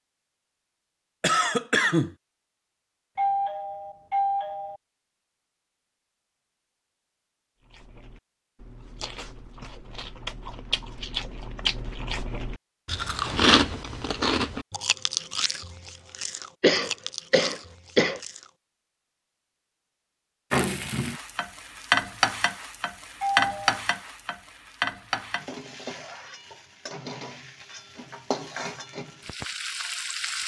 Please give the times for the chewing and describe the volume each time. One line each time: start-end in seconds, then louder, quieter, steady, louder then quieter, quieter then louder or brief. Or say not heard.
7.7-18.5 louder then quieter.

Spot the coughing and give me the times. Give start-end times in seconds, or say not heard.
1.2-2.1, 16.6-18.2.